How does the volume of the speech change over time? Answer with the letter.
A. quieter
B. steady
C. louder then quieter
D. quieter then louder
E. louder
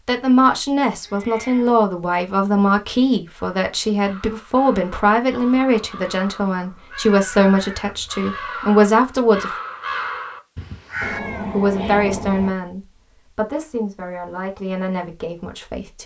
A.